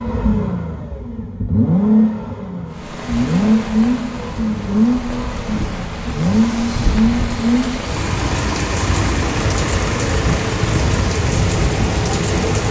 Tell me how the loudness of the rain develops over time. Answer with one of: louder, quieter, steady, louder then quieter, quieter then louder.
louder.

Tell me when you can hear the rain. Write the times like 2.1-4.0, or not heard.
2.7-12.6.